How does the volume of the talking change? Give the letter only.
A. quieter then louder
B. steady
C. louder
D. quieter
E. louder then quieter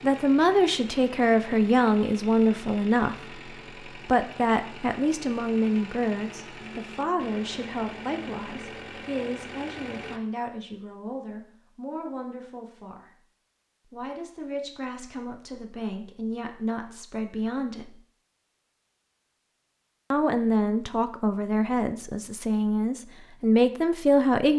A.